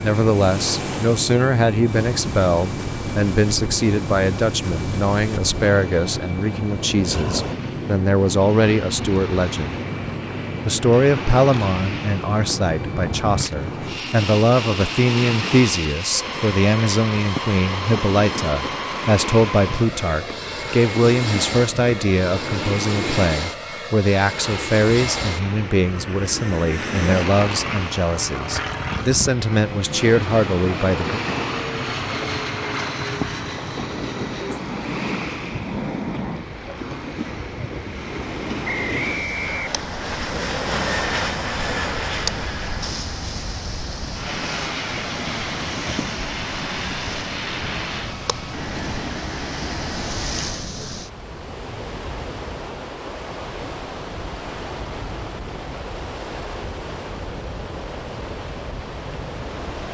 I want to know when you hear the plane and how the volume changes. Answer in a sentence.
You can hear the plane from 0.0 to 50.7 s, at a steady volume.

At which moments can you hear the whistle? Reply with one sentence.
You can hear the whistle from 38.6 to 40.2 s.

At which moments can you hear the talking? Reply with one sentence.
You can hear the talking from 0.0 to 9.8 s and from 10.7 to 31.2 s.